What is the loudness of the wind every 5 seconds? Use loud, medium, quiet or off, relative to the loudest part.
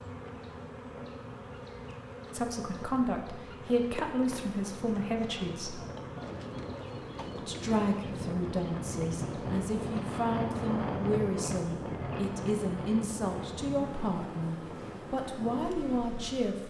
off, loud, loud, medium.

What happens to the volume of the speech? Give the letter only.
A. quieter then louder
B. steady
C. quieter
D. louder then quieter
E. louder
B.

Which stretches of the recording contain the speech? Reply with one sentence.
The speech can be heard from 2.3 to 5.8 s and from 7.3 to 16.6 s.